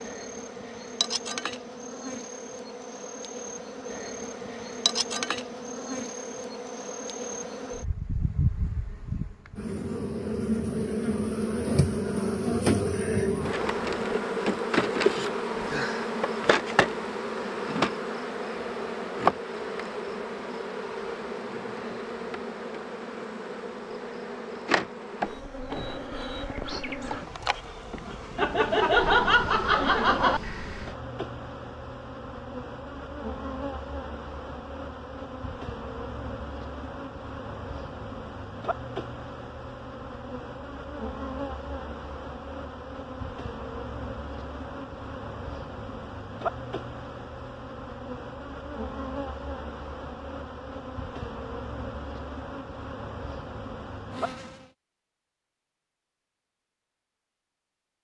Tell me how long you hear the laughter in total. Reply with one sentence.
You can hear the laughter for 2 seconds altogether.